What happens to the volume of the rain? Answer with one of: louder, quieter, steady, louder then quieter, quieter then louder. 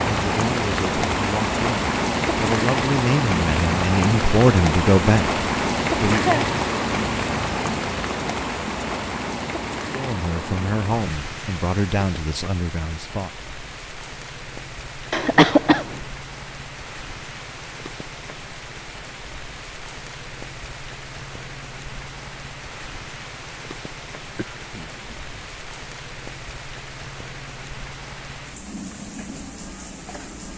quieter.